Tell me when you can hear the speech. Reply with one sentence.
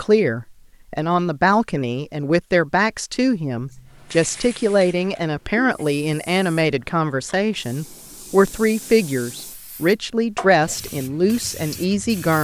The speech can be heard from 0.0 to 12.3 s.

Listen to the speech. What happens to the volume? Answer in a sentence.
The volume of the speech stays about the same.